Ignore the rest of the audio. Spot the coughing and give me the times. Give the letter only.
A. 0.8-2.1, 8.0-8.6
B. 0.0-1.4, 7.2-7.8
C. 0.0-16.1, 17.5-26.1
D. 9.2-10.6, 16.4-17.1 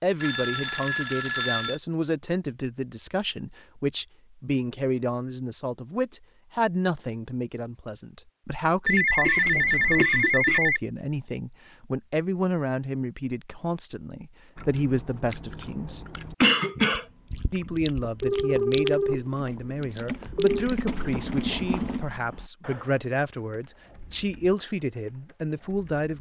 D.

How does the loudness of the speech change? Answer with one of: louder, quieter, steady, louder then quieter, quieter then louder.
steady.